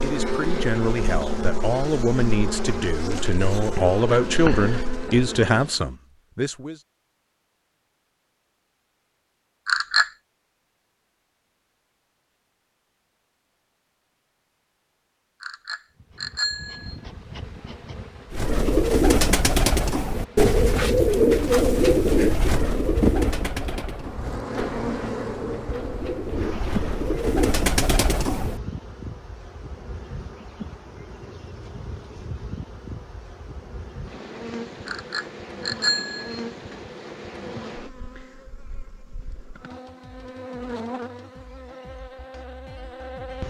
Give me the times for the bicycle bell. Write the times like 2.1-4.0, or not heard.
9.7-10.1, 15.4-16.9, 34.9-36.4.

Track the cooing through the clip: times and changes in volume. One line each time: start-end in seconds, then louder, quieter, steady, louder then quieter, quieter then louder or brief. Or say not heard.
18.3-28.6 quieter then louder.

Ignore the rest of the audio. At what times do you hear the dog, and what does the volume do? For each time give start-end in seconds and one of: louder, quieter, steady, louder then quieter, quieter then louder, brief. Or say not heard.
not heard.